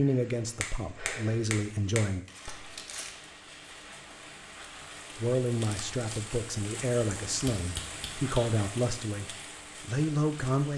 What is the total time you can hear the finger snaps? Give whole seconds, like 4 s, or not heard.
3 s.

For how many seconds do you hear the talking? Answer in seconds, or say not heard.
8 s.